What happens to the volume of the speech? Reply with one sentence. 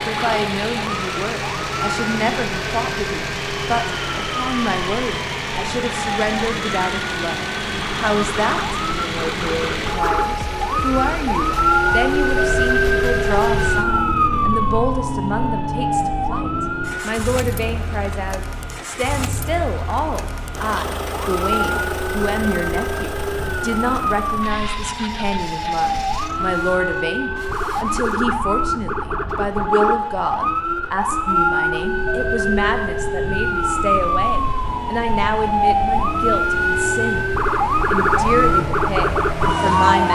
The loudness of the speech stays about the same.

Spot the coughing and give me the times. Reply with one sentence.
You can't hear the coughing here.